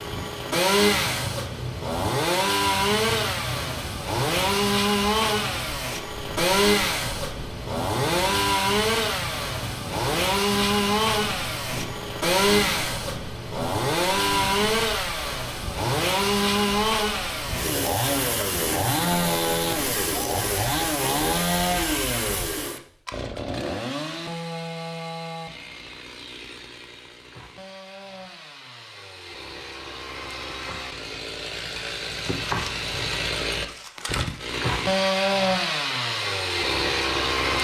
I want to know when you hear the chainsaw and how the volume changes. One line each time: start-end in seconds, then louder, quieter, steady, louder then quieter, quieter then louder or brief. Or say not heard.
0.0-37.5 quieter then louder.